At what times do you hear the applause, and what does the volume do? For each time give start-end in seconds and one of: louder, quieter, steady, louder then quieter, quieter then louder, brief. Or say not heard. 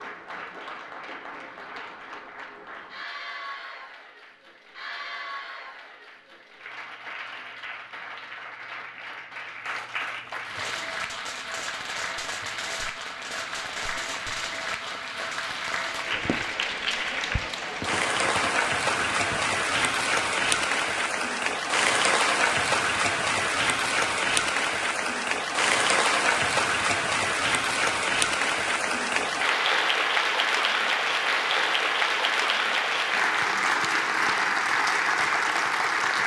0.0-36.2 louder.